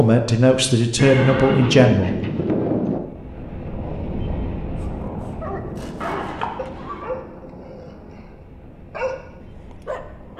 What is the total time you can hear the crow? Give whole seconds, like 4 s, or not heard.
not heard.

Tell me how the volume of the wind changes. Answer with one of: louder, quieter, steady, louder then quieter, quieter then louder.
quieter.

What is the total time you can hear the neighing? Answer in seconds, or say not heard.
3 s.